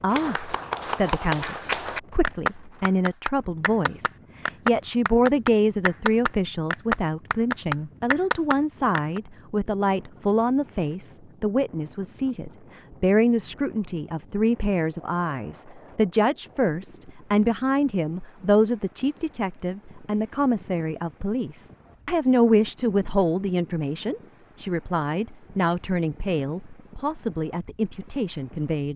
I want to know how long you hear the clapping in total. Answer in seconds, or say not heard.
9 s.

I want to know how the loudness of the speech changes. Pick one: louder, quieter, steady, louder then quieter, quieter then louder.
steady.